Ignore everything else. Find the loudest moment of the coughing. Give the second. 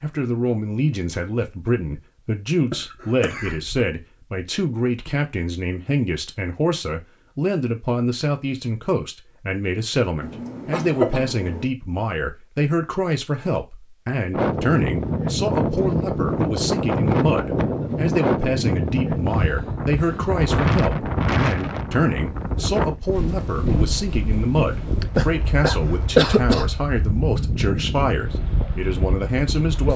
26 s.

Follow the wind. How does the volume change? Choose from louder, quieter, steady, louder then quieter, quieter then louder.
quieter.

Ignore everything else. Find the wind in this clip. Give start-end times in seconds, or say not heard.
14.3-29.9.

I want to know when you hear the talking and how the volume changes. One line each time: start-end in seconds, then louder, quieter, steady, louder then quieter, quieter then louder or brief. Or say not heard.
0.0-29.9 steady.